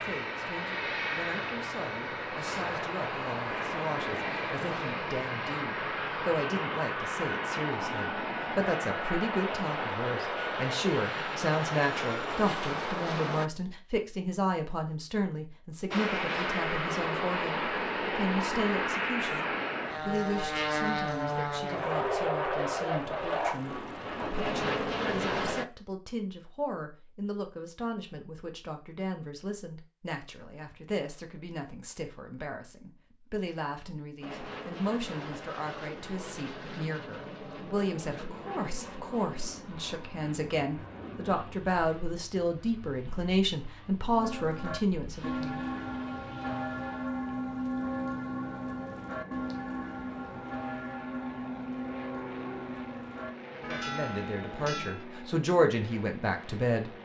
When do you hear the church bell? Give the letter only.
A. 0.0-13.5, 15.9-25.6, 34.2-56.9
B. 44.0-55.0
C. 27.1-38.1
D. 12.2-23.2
B.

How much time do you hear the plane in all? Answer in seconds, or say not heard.
46 s.